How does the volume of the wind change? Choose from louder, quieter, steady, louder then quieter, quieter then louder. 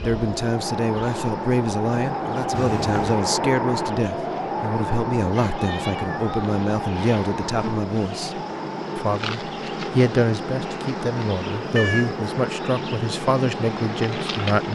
quieter.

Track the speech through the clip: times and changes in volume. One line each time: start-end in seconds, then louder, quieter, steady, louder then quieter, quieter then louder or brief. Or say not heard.
0.0-14.6 steady.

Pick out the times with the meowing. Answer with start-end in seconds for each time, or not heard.
2.5-3.2, 5.5-6.2, 11.6-12.2.